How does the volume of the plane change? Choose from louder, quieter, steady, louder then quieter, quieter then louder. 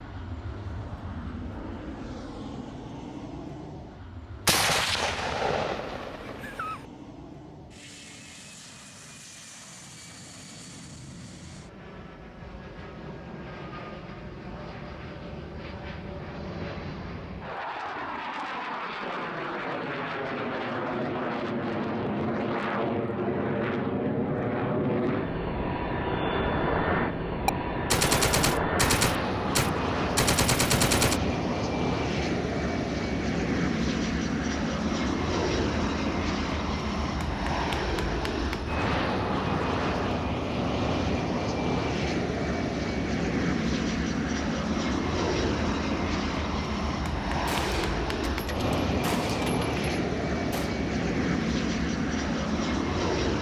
louder.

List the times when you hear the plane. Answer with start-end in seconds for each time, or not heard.
0.0-53.3.